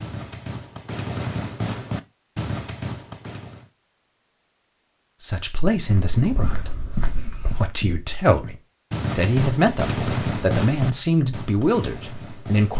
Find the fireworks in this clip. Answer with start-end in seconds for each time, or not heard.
0.0-3.7, 8.9-12.7.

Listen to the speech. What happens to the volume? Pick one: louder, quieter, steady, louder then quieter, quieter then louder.
quieter then louder.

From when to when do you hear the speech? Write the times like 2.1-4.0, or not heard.
5.2-8.6, 9.2-12.7.